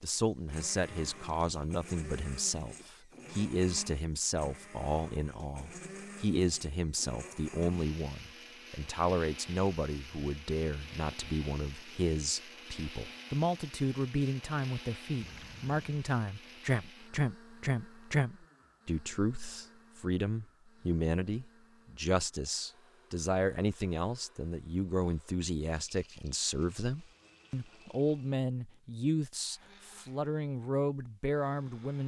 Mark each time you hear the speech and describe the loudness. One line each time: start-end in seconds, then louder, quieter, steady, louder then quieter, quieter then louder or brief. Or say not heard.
0.0-32.0 steady.